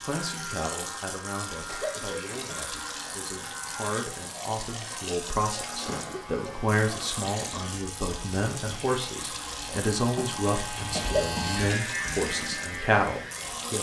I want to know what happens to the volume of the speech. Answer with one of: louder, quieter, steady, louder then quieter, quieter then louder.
louder.